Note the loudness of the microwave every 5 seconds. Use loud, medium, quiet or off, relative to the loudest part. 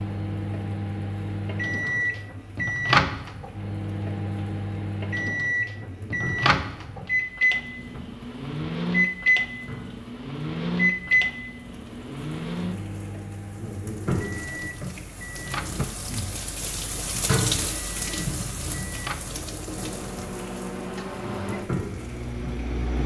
loud, loud, loud, medium, medium.